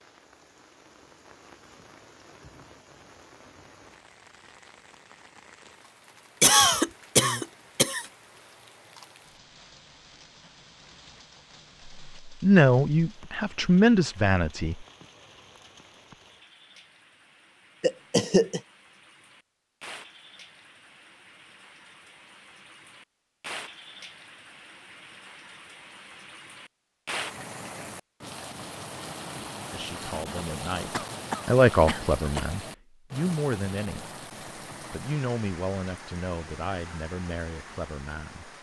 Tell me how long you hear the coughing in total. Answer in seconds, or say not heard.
4 s.